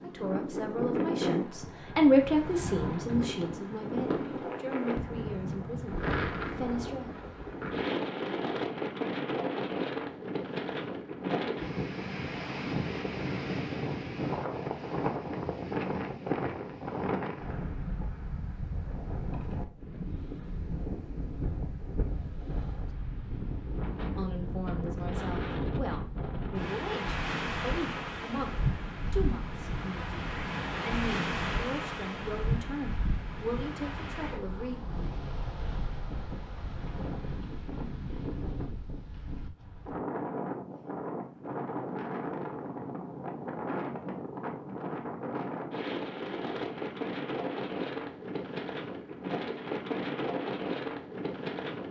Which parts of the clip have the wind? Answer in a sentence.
The wind can be heard from 0.0 to 51.8 s.